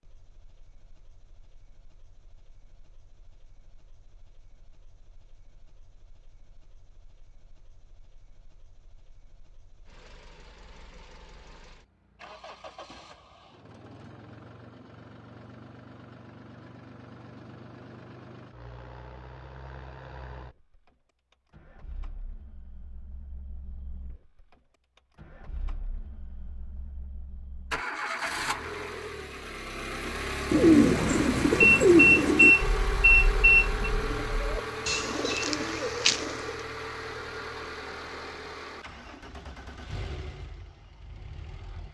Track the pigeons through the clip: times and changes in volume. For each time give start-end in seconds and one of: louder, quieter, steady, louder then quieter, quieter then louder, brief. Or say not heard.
30.1-36.6 quieter then louder.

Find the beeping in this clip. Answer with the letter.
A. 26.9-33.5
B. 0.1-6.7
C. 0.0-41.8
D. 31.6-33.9
D.